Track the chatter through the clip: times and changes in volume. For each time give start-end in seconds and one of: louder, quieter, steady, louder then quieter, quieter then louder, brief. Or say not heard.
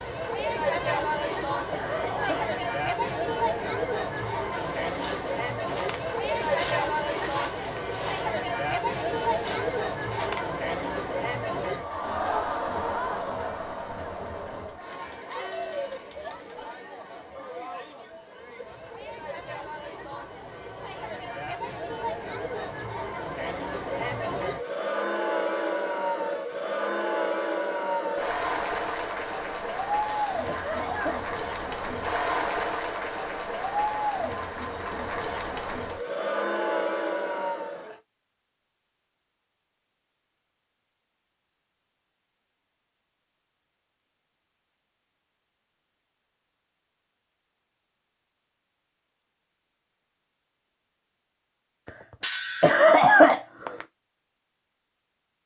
0.0-38.0 quieter then louder.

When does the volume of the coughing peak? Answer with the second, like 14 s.
53 s.